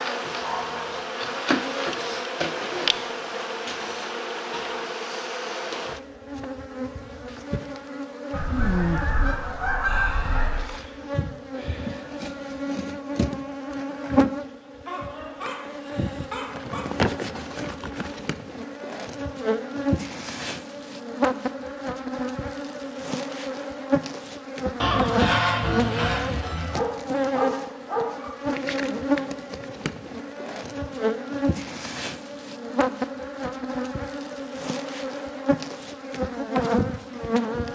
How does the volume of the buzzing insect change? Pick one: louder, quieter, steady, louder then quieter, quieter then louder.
steady.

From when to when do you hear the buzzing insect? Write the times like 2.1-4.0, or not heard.
0.0-37.6.